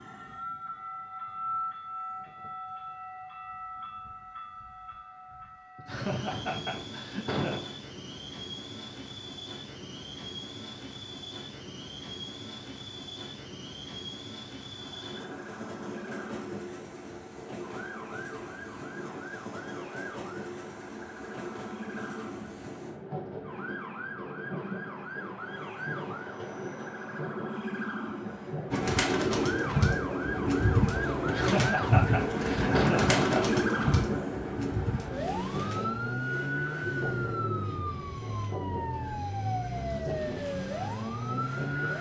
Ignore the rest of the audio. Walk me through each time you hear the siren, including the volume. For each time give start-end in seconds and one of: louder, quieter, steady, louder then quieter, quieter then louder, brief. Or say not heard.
14.7-41.9 louder.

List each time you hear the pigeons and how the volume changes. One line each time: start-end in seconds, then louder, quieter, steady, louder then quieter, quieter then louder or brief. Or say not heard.
28.7-37.9 quieter.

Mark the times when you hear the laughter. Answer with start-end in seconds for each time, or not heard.
5.8-7.7, 31.2-33.6.